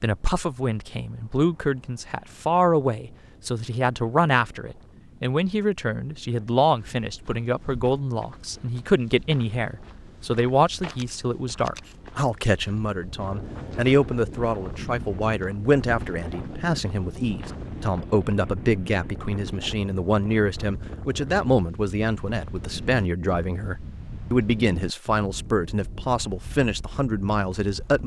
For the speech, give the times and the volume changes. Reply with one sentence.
You can hear the speech from 0.0 to 28.0 s, at a steady volume.